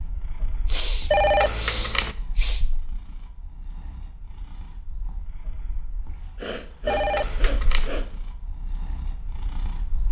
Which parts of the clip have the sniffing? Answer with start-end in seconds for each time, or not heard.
0.7-2.6, 6.3-8.1.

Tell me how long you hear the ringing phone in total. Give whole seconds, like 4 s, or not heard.
2 s.